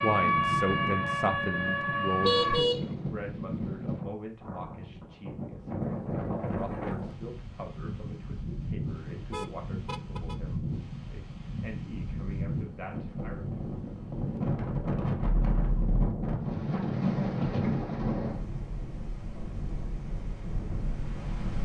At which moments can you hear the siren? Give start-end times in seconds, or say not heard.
0.0-2.6.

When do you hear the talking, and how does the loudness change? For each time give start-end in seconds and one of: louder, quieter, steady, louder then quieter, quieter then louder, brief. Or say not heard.
0.0-13.4 quieter.